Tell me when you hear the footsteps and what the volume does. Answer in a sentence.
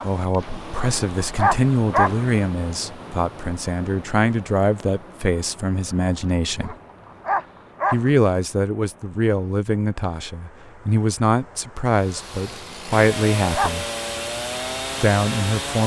The footsteps can't be heard in this clip.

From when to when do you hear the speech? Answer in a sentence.
The speech can be heard from 0.0 to 6.8 s, from 7.9 to 13.8 s and from 14.9 to 15.8 s.